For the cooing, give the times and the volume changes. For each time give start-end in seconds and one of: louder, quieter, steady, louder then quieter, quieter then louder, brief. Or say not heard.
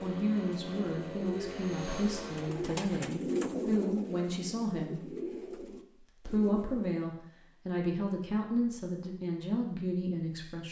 0.0-7.0 louder then quieter.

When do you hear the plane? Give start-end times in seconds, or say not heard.
0.0-2.5.